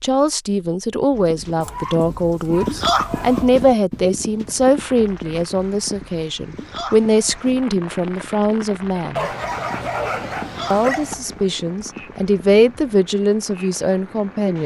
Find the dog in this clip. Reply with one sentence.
You can hear the dog from 1.6 to 3.5 s and from 9.2 to 11.2 s.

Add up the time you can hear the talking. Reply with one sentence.
You can hear the talking for 13 seconds altogether.